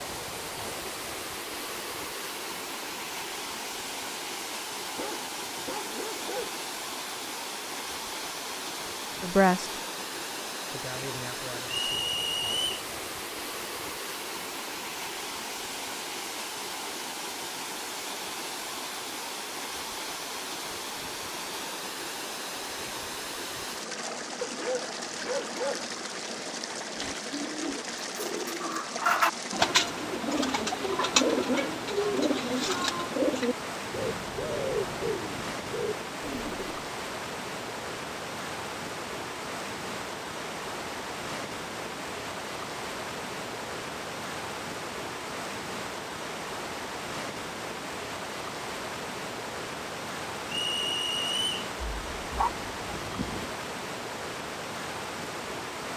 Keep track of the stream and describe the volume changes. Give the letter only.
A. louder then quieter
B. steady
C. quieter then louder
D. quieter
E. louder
B.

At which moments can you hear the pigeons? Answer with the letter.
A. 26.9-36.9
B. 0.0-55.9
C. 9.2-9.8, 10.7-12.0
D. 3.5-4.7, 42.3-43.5
A.